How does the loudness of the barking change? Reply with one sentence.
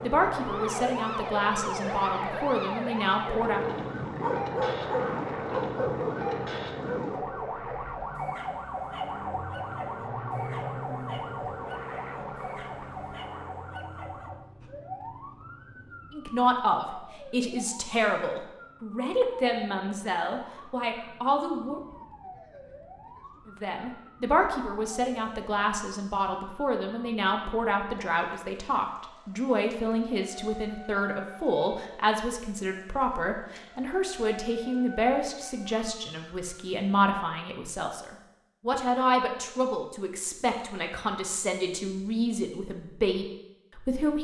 The loudness of the barking goes down.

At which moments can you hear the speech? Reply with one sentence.
The speech can be heard from 0.0 to 3.6 s, from 16.1 to 21.8 s and from 23.4 to 44.1 s.